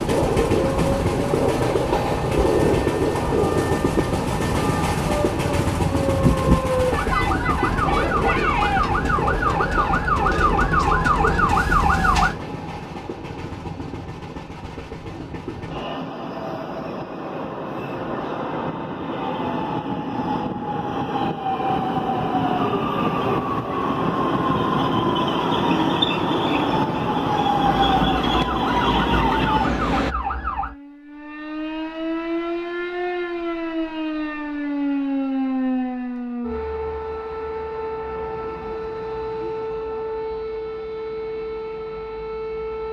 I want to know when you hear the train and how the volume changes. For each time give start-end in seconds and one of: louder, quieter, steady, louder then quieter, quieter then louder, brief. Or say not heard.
0.0-30.1 quieter then louder.